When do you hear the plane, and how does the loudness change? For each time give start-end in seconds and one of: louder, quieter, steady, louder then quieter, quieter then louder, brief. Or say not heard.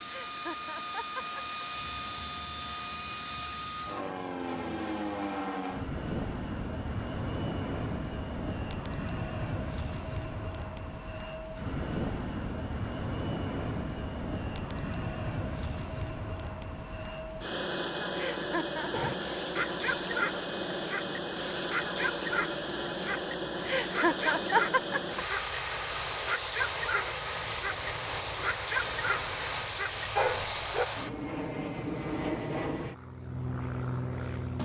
0.0-34.6 steady.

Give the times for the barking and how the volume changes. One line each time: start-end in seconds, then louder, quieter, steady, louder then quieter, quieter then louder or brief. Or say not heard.
18.9-30.9 steady.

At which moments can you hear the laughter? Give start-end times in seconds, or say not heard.
0.1-1.4, 18.1-19.1, 23.6-25.2.